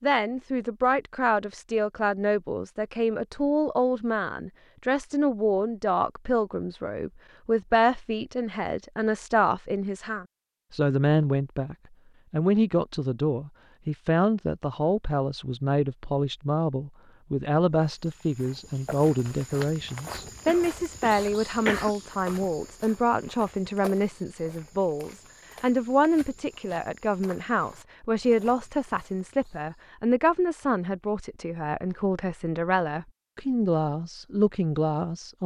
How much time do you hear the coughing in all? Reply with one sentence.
The coughing can be heard for 2 seconds in total.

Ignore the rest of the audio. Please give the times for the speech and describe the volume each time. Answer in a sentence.
You can hear the speech from 0.0 to 35.4 s, at a steady volume.